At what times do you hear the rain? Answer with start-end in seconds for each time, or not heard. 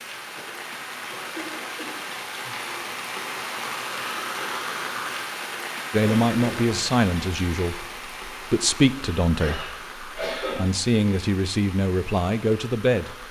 0.0-13.2.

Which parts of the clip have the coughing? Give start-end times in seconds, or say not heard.
0.3-1.9, 6.0-6.9, 9.3-10.7.